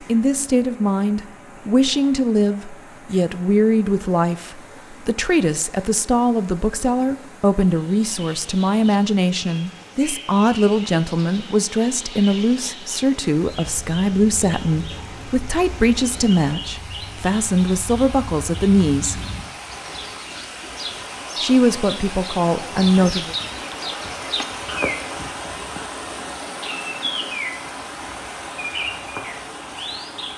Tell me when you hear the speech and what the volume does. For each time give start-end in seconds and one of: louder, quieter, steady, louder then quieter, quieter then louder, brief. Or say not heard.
0.1-19.2 steady
21.4-23.4 brief.